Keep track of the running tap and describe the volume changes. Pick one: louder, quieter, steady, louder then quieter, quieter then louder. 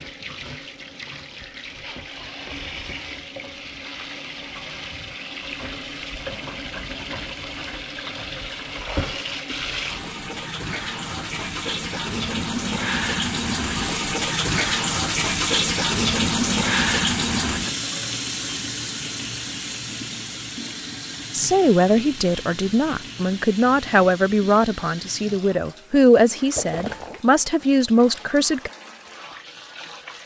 louder then quieter.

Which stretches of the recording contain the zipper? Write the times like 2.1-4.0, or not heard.
26.6-27.2.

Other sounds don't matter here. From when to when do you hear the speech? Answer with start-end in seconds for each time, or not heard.
21.3-28.7.